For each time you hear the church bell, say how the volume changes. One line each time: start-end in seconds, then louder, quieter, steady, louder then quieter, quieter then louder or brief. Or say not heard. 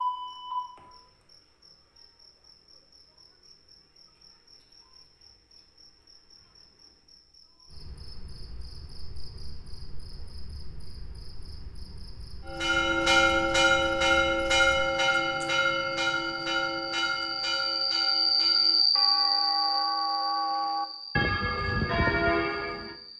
12.4-22.9 quieter then louder.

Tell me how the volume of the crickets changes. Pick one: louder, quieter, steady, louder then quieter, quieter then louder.
quieter then louder.